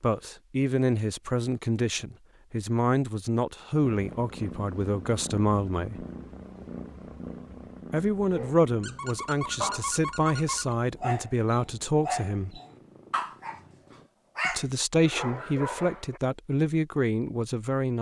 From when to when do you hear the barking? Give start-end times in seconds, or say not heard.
8.3-16.2.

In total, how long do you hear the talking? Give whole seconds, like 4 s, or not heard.
14 s.